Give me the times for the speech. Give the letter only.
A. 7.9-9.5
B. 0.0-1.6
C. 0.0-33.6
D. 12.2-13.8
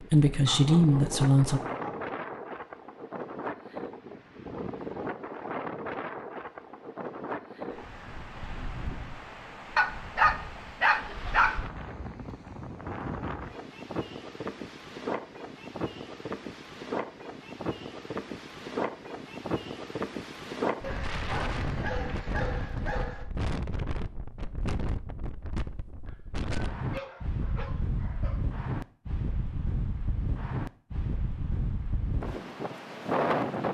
B.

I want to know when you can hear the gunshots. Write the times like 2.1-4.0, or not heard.
not heard.